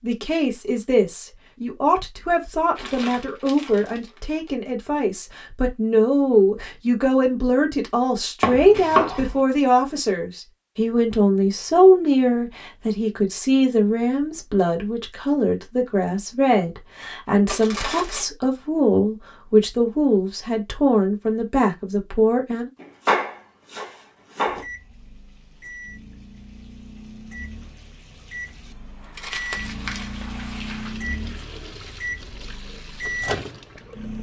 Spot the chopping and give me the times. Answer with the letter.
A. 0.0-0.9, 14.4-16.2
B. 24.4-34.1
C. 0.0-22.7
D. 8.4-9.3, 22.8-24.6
D.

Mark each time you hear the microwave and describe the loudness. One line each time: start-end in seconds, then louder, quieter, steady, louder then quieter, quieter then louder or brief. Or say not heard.
24.4-34.1 louder.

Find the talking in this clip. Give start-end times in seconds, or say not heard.
0.0-22.7.